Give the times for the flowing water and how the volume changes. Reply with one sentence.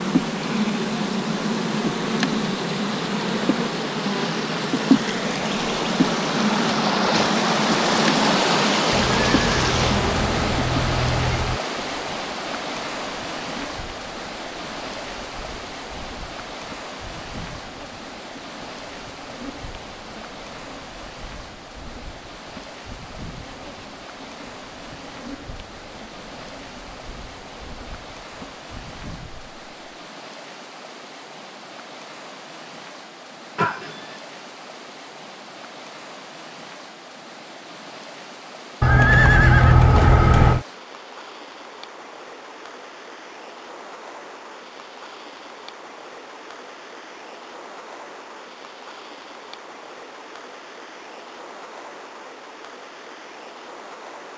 The flowing water can be heard from 0.0 to 54.3 s, getting quieter.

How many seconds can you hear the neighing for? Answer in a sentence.
You can hear the neighing for 5 seconds altogether.